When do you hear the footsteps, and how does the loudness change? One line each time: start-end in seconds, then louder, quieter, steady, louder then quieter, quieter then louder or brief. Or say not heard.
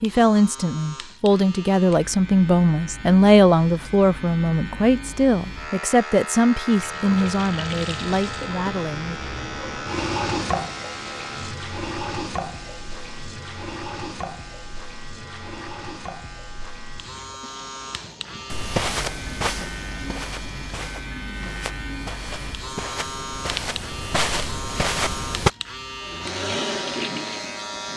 18.5-25.5 quieter then louder.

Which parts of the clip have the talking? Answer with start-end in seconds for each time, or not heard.
0.0-9.2.